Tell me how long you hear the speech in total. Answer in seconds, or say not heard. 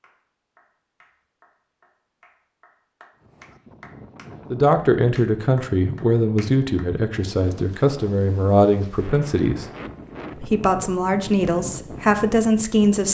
8 s.